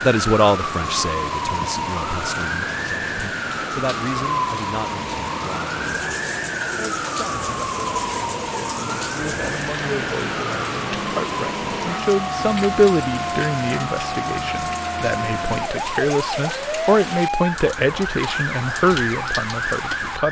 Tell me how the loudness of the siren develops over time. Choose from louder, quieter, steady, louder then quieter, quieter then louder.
steady.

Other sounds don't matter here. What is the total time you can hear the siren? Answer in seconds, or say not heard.
20 s.